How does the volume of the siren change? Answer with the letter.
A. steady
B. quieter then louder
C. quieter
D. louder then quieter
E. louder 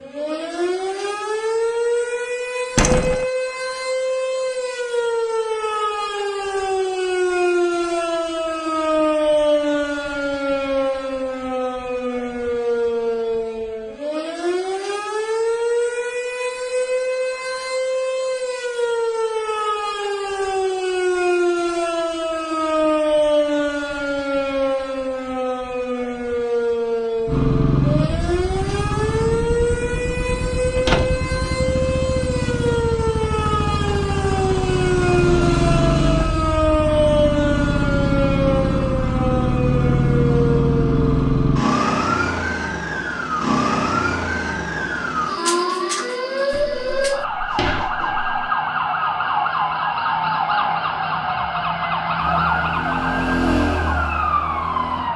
A.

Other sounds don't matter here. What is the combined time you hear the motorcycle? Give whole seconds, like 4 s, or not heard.
17 s.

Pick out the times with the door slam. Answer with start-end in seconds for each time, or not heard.
2.8-3.2, 30.8-31.3, 46.5-48.4.